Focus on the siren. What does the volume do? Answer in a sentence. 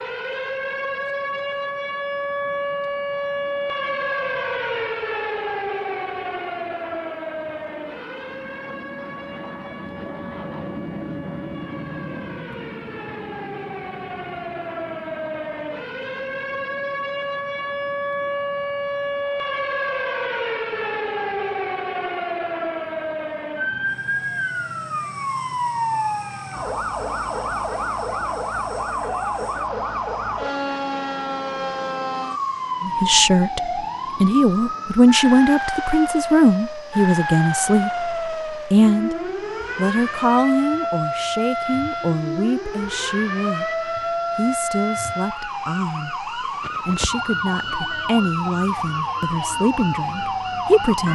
The volume of the siren stays about the same.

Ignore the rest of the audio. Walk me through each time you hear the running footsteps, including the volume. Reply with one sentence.
The running footsteps can't be heard in this clip.